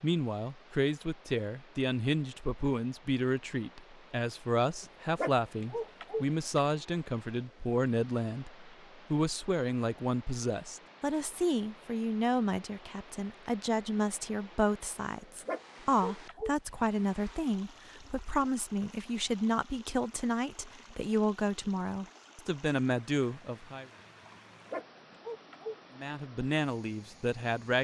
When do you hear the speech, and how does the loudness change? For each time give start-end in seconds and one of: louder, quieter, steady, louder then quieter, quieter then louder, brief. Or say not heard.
0.0-23.9 steady
25.9-27.7 brief.